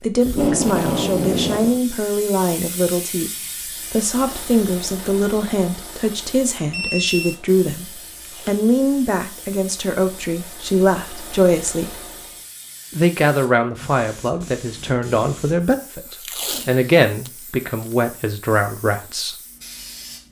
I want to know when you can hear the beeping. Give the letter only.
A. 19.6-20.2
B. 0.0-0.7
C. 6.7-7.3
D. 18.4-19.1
C.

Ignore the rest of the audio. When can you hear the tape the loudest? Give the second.
1 s.